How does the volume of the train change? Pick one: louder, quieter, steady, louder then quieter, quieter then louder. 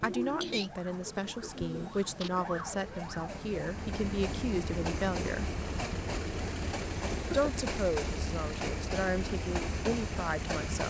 louder.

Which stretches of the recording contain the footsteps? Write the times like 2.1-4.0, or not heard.
not heard.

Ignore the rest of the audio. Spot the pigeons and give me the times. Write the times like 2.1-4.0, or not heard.
0.0-2.4.